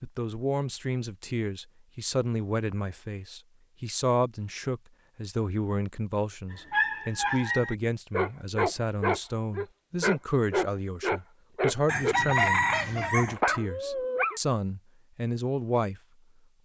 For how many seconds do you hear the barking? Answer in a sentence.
The barking can be heard for 8 seconds in total.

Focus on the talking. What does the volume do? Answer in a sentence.
The volume of the talking stays about the same.